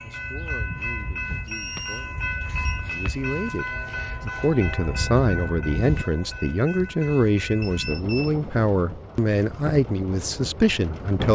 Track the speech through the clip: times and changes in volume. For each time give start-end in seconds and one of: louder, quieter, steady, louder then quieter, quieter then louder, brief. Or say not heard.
0.0-11.2 louder.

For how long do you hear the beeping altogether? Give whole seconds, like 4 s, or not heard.
2 s.